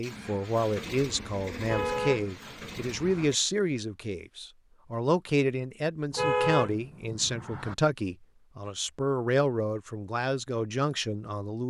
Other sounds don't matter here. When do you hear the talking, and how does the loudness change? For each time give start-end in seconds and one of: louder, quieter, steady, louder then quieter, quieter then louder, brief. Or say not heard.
0.0-11.6 steady.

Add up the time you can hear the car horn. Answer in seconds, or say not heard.
3 s.